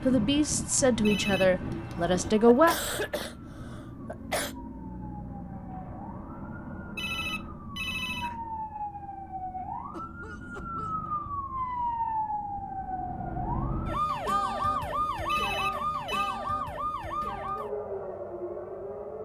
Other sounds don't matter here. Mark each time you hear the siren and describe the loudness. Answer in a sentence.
The siren can be heard from 0.0 to 19.1 s, getting louder.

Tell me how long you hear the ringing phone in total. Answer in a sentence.
You can hear the ringing phone for 3 seconds altogether.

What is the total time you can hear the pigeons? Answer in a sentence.
The pigeons can't be heard in this clip.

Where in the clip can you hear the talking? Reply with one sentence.
The talking can be heard from 0.0 to 2.8 s.